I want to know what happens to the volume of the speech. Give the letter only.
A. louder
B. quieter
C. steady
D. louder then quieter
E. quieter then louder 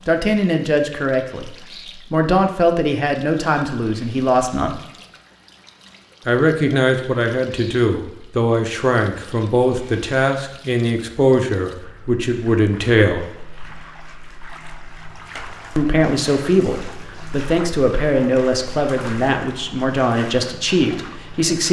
C.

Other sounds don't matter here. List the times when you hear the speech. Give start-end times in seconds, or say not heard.
0.1-4.8, 6.2-13.2, 15.8-21.6.